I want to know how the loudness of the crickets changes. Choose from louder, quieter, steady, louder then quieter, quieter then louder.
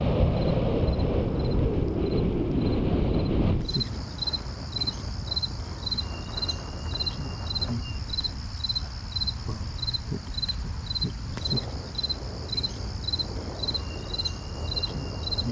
louder.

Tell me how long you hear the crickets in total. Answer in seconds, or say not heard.
15 s.